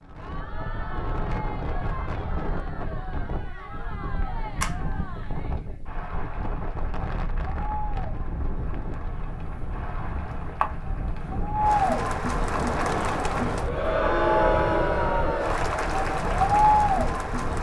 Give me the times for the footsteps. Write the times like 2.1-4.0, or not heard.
not heard.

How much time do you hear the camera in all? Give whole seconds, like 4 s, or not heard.
2 s.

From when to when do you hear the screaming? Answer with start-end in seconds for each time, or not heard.
not heard.